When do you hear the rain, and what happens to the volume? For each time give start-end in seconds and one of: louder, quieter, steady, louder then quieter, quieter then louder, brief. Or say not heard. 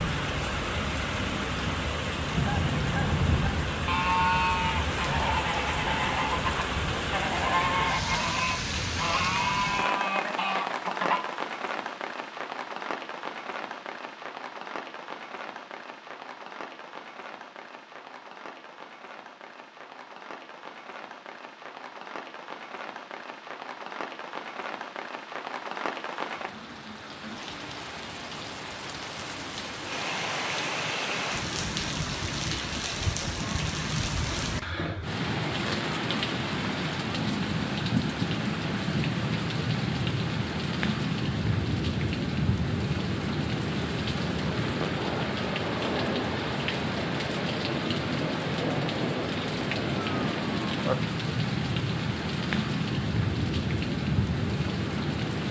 0.0-55.4 quieter then louder.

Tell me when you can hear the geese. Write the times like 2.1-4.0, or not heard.
2.3-11.2.